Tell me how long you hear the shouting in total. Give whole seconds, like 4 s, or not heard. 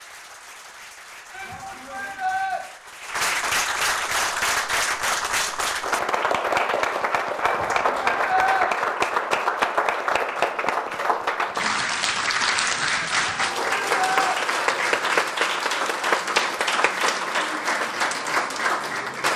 4 s.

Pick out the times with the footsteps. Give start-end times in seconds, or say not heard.
not heard.